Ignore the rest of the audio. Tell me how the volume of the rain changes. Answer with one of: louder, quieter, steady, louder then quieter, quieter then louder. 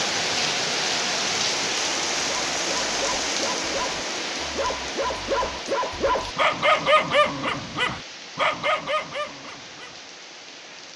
quieter.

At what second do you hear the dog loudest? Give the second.
7 s.